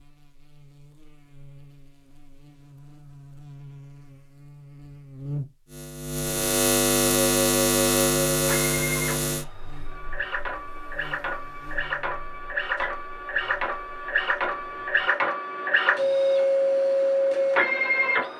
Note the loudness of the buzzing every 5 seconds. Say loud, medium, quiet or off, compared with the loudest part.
quiet, loud, quiet, off.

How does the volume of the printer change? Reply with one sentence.
The loudness of the printer goes up.